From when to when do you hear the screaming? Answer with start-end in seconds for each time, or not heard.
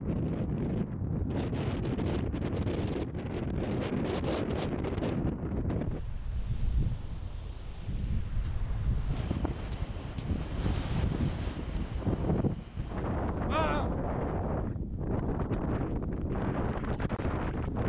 13.5-13.9.